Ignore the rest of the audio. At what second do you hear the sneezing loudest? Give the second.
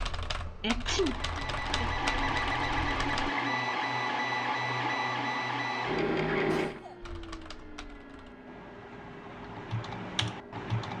1 s.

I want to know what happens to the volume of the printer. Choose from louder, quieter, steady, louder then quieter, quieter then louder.
quieter.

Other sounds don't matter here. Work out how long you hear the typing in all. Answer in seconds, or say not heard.
7 s.